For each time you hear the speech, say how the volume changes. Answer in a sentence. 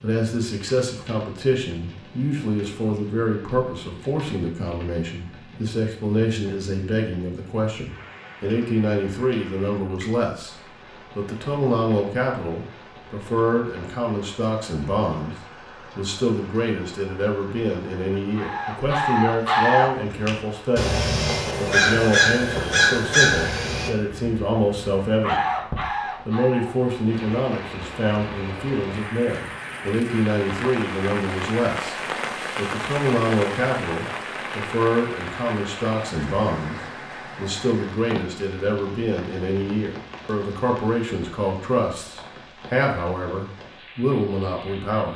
The speech can be heard from 0.0 to 25.4 s, at a steady volume; and from 26.2 to 45.1 s, at a steady volume.